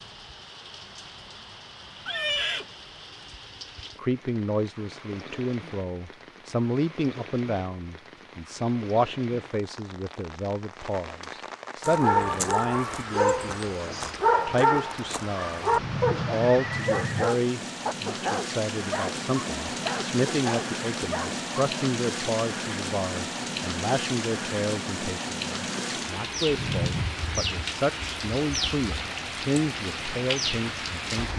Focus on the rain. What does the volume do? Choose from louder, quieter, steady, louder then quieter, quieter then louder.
louder.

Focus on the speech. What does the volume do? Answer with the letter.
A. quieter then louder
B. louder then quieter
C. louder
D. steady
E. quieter
D.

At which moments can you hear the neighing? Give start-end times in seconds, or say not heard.
2.0-2.8, 15.7-17.3, 26.4-27.1.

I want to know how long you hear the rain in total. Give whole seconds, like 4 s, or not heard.
31 s.